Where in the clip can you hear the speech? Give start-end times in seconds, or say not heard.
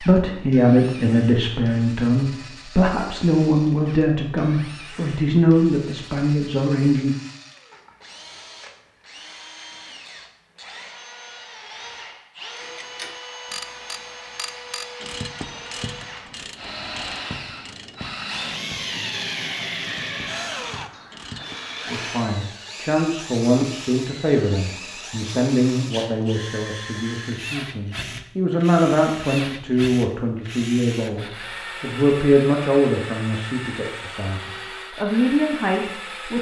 0.0-7.2, 21.9-36.3.